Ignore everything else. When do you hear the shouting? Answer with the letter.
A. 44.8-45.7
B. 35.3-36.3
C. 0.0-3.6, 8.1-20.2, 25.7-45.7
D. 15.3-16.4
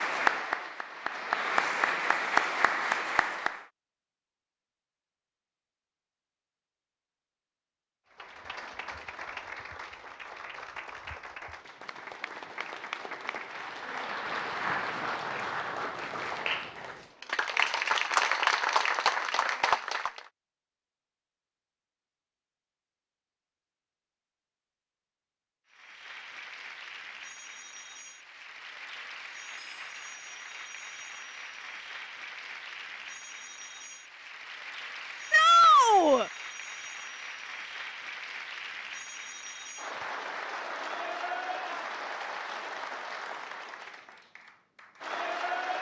B.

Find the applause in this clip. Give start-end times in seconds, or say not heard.
0.0-3.6, 8.1-20.2, 25.7-45.7.